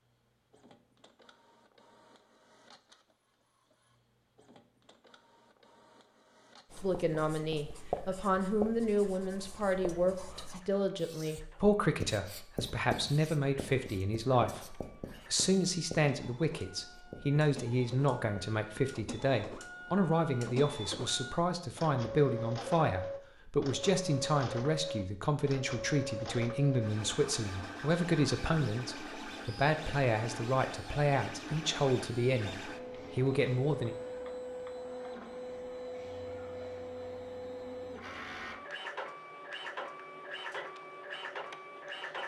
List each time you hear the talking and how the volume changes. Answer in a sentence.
You can hear the talking from 6.8 to 33.9 s, at a steady volume.